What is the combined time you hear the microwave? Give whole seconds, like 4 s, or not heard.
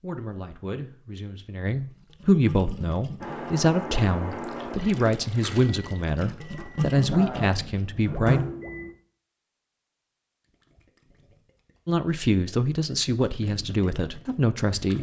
6 s.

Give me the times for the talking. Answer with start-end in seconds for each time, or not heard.
0.0-8.4, 11.8-14.9.